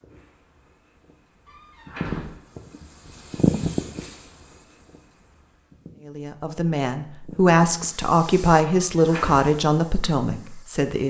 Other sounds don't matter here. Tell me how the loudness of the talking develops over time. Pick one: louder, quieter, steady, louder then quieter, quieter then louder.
louder then quieter.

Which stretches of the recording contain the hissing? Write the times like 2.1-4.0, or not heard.
0.0-6.0, 7.2-11.0.